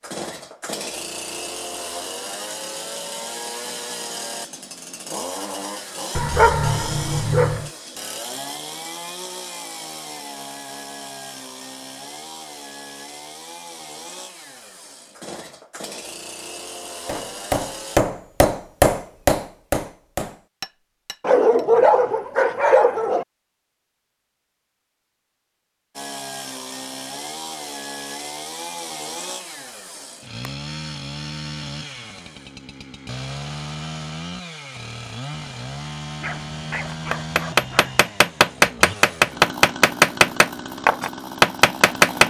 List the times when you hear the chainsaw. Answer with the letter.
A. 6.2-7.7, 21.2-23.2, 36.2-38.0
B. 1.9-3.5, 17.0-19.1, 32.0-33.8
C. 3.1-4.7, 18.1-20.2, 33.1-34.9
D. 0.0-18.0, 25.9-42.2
D.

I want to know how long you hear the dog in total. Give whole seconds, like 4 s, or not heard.
5 s.